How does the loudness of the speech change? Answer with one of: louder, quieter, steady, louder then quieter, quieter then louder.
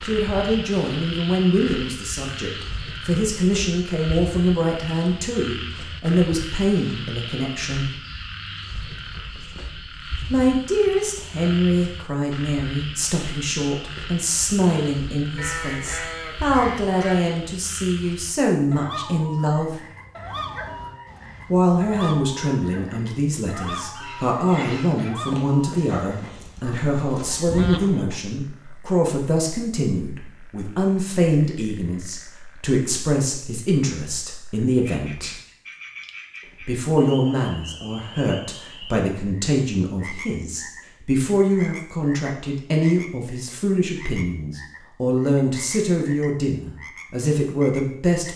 steady.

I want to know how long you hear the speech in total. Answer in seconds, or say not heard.
43 s.